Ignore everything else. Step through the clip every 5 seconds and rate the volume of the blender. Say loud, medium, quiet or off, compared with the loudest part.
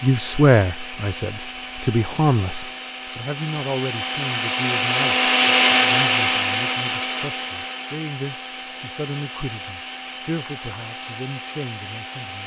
medium, loud, quiet.